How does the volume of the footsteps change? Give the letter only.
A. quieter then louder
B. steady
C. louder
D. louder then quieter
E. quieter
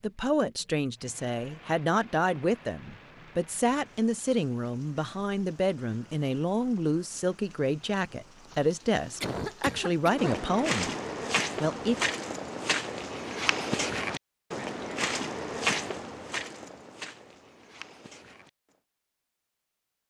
E.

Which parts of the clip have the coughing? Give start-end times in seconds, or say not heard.
9.2-10.4.